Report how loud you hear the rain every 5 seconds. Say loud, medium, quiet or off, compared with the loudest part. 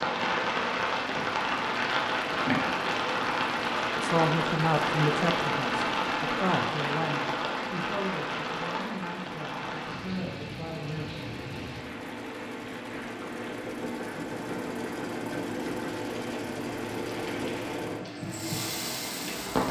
loud, loud, quiet, medium.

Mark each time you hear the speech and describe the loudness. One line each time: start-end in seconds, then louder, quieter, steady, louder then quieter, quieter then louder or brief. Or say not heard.
4.0-11.2 quieter.